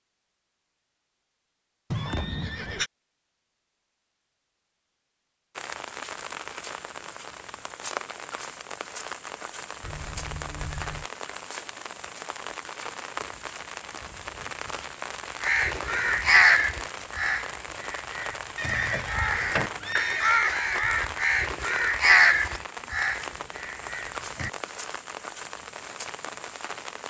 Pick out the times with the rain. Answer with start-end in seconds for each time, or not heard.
5.5-27.0.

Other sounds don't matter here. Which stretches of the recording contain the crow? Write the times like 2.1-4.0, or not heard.
15.4-24.5.